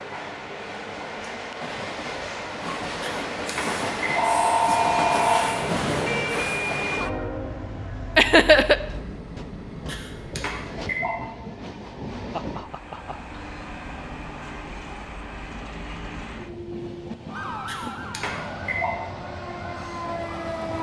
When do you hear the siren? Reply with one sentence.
The siren can be heard from 4.8 to 7.2 s and from 17.2 to 20.7 s.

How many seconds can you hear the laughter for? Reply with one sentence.
The laughter can be heard for 2 seconds in total.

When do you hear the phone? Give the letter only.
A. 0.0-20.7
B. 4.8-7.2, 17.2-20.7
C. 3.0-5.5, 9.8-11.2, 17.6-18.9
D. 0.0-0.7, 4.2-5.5
C.